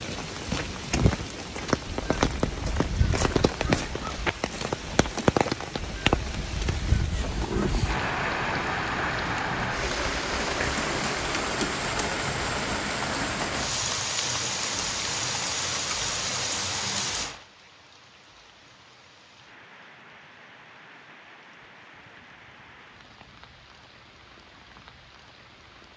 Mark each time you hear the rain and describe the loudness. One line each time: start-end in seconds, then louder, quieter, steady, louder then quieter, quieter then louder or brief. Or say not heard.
0.0-25.9 quieter.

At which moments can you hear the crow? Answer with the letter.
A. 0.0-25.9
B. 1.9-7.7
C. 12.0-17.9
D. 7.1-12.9
B.